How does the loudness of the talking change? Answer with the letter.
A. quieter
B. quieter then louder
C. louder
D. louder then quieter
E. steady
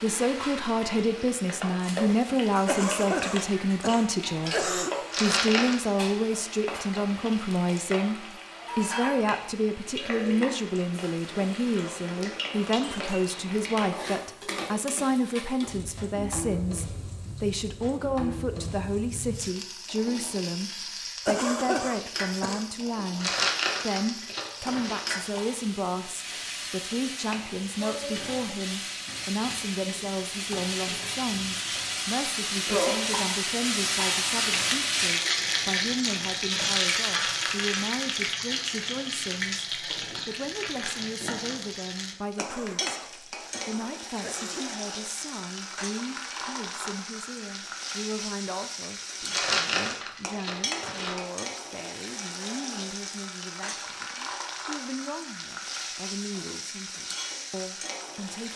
A.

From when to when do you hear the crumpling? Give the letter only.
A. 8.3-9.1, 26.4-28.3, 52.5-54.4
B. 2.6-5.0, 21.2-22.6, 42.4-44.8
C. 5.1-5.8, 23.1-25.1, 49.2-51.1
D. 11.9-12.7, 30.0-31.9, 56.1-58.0
C.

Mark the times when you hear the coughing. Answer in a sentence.
You can hear the coughing from 2.6 to 5.0 s, from 21.2 to 22.6 s and from 42.4 to 44.8 s.